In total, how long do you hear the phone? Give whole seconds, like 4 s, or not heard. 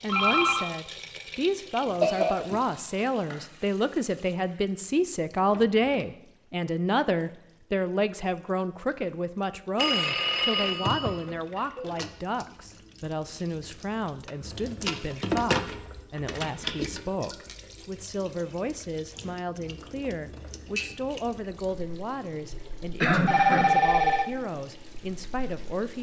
3 s.